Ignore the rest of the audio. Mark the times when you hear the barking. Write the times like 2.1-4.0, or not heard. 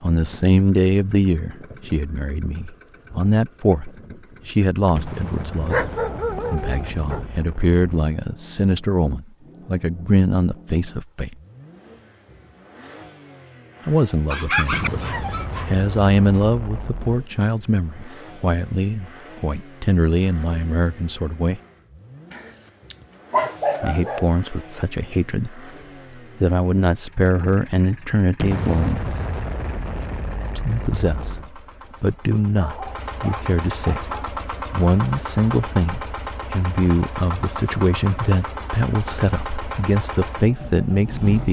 5.7-7.2, 14.3-15.7, 22.3-24.3, 32.5-34.4.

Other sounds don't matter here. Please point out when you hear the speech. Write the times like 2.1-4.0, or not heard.
0.0-5.8, 6.5-11.3, 13.8-21.6, 23.8-25.7, 26.4-29.2, 30.6-41.4.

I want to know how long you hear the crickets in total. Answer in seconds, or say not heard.
not heard.